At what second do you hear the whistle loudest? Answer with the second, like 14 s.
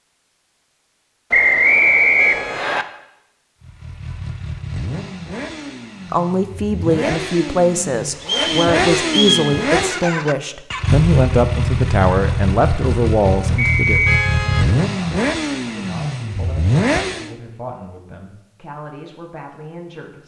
2 s.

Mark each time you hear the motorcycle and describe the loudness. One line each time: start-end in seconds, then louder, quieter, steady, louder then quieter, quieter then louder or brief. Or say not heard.
3.6-17.4 louder.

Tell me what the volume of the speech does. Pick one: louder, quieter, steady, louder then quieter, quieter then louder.
quieter.